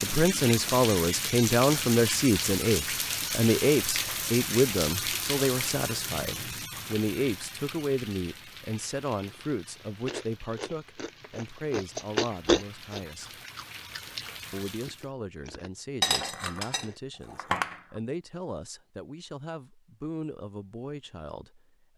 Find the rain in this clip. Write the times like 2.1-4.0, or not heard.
0.0-15.1.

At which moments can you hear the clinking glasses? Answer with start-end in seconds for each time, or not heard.
16.0-17.8.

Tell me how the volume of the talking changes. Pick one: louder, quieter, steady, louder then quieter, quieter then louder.
quieter.